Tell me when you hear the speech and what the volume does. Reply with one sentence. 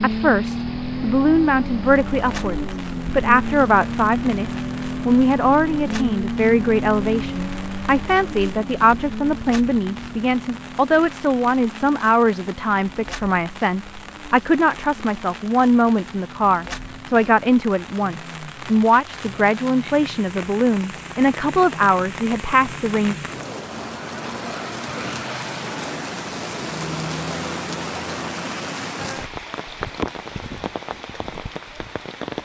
The speech can be heard from 0.0 to 23.1 s, at a steady volume.